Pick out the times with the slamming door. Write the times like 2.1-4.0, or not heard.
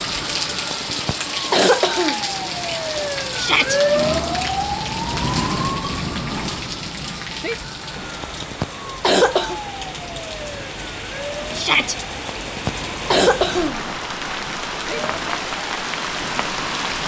not heard.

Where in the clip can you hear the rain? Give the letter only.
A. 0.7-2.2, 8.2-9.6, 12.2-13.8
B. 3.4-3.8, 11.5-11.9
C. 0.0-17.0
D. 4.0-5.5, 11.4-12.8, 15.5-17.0
C.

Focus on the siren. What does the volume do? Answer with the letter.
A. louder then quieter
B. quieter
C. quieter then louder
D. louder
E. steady
A.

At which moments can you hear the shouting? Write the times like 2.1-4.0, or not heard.
3.4-3.8, 11.5-11.9.